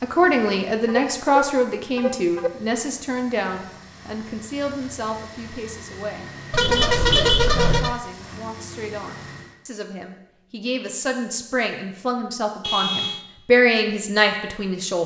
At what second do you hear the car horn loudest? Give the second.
7 s.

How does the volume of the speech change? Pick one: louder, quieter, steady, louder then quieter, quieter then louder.
quieter then louder.